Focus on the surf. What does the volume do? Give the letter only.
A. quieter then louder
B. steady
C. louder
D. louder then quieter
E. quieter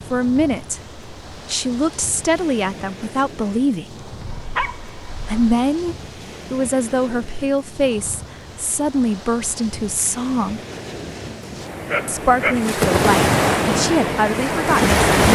C.